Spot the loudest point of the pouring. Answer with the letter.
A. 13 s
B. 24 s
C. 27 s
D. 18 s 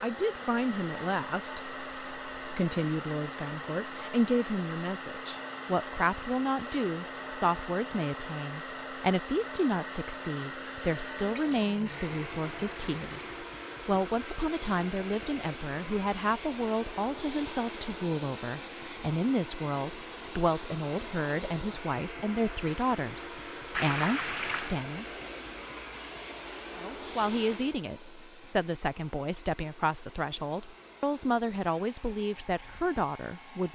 B.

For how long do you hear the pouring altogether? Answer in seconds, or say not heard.
3 s.